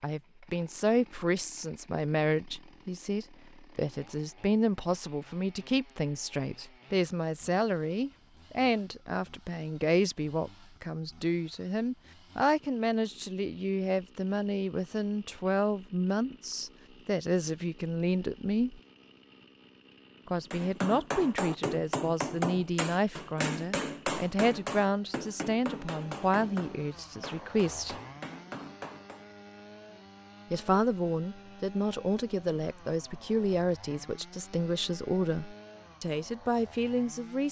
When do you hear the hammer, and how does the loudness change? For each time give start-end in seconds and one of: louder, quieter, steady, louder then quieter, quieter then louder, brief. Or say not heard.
20.5-29.2 quieter.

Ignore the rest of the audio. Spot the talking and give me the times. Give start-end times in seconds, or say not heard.
0.0-18.8, 20.2-27.9, 30.5-37.4.